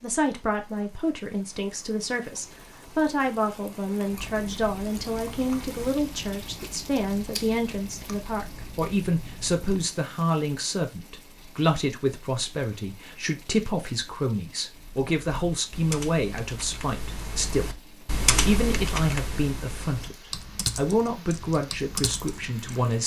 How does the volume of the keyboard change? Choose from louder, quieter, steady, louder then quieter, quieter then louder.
louder then quieter.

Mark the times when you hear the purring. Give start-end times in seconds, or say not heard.
not heard.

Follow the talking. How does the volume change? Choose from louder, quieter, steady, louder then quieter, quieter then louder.
steady.